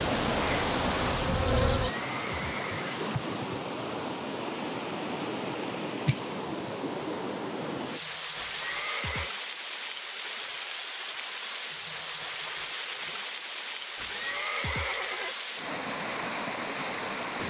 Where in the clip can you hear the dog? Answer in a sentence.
You can't hear the dog here.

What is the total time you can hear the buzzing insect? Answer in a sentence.
You can hear the buzzing insect for 2 seconds altogether.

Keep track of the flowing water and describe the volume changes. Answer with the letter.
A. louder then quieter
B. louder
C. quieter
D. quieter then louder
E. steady
E.